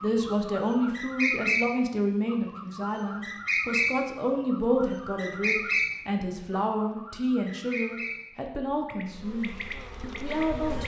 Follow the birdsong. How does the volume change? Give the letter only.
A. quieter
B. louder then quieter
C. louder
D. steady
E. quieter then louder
A.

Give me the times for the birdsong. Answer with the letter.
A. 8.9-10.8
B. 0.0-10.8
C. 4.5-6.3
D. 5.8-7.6
B.